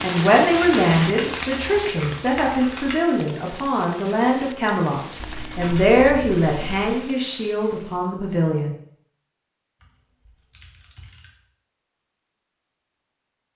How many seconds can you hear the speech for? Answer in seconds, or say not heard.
9 s.